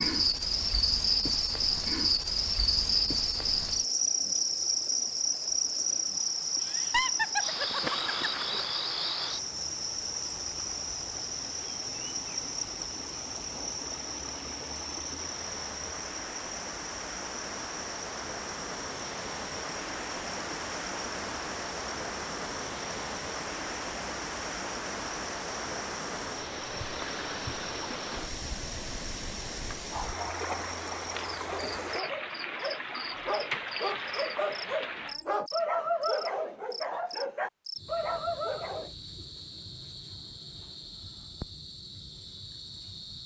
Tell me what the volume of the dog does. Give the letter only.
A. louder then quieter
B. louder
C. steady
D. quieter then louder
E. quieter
B.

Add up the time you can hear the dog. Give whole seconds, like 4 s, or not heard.
9 s.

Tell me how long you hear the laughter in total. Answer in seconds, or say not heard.
2 s.